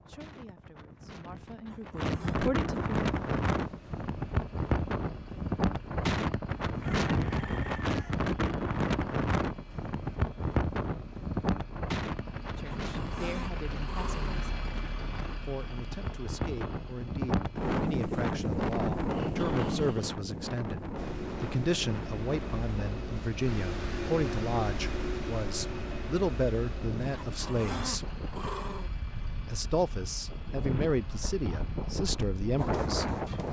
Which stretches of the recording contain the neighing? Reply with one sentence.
You can't hear the neighing here.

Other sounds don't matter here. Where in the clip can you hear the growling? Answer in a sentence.
The growling can be heard from 1.6 to 2.4 s, from 12.7 to 14.5 s and from 27.1 to 28.9 s.